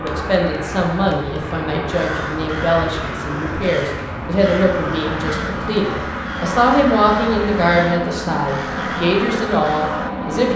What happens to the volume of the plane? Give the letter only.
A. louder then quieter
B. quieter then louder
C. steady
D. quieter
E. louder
C.